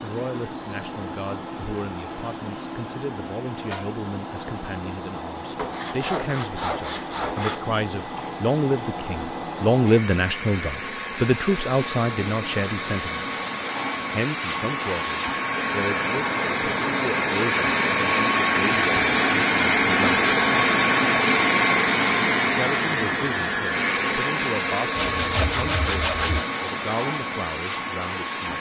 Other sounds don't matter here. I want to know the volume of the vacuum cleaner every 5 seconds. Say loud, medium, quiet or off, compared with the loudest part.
quiet, quiet, medium, loud, loud, medium.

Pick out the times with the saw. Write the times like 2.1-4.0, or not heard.
5.5-7.6, 24.9-26.4.